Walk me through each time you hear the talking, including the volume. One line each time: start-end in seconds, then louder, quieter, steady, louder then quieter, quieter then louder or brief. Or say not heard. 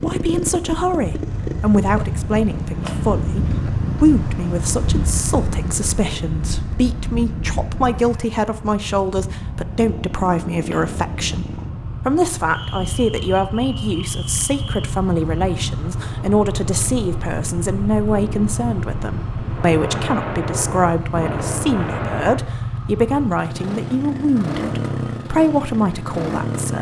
0.0-26.7 steady.